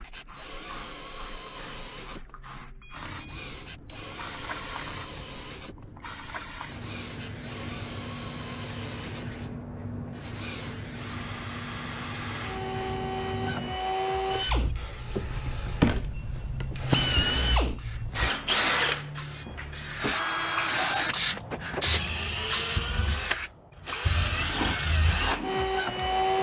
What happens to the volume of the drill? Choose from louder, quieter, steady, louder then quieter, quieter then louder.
louder.